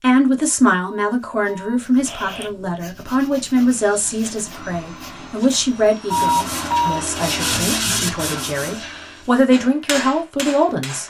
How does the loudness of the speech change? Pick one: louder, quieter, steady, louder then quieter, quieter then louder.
quieter then louder.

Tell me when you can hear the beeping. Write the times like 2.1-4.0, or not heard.
0.8-2.5, 6.1-7.0.